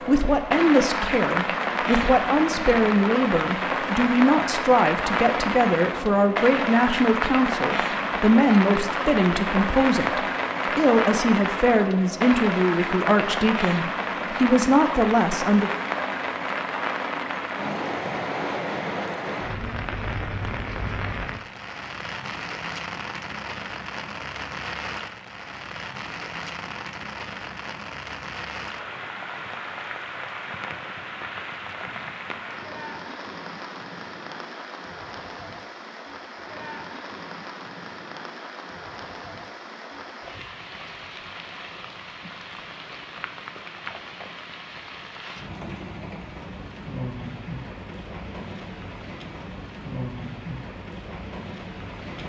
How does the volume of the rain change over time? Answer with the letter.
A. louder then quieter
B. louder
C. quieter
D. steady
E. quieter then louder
C.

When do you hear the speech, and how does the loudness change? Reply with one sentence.
The speech can be heard from 0.1 to 15.7 s, at a steady volume.